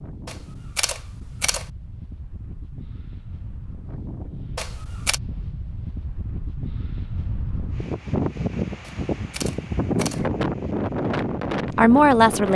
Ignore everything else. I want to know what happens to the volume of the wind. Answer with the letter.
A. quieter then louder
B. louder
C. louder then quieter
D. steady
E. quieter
B.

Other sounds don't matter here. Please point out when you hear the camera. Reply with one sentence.
You can hear the camera from 0.2 to 1.7 s, from 4.5 to 5.2 s and from 8.8 to 10.2 s.